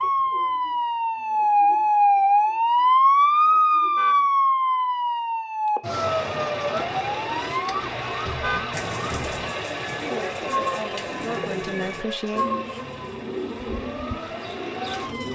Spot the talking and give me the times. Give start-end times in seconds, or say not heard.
10.0-12.4.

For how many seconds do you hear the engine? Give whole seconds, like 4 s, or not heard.
9 s.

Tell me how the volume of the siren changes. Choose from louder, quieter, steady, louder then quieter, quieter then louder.
quieter.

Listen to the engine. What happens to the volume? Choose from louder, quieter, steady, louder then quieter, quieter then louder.
quieter.